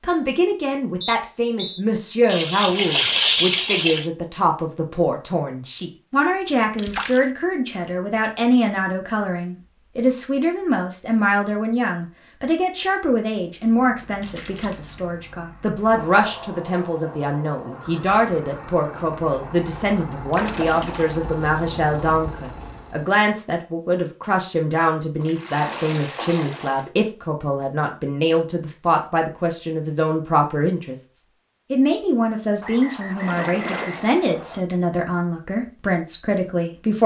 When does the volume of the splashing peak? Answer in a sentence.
The loudest moment of the splashing is at 3 seconds.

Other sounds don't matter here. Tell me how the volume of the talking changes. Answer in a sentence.
The loudness of the talking stays about the same.